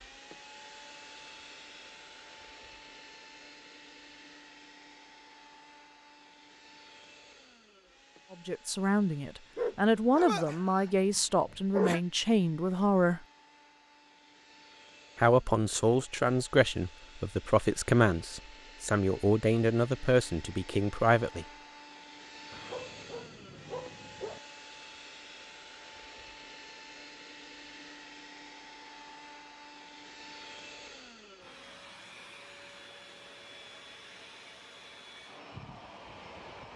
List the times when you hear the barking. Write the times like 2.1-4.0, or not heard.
9.6-12.0, 22.5-24.4.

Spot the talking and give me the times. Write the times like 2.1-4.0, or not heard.
8.3-13.2, 15.2-21.4.